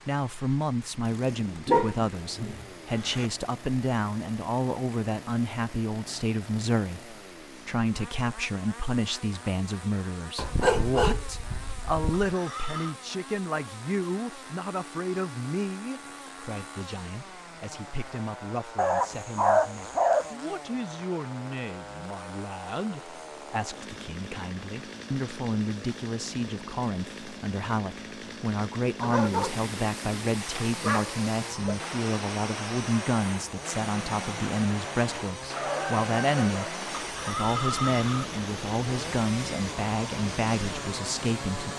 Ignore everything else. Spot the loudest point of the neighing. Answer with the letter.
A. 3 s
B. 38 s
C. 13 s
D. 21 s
B.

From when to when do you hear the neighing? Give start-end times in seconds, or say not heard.
12.2-12.9, 37.0-38.2.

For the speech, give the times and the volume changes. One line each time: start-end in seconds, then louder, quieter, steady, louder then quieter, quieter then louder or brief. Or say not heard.
0.1-41.7 quieter then louder.